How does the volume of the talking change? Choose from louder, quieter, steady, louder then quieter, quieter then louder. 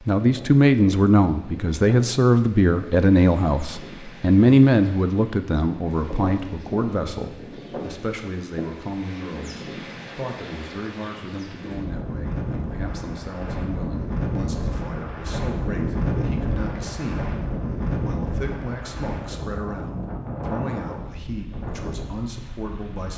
quieter.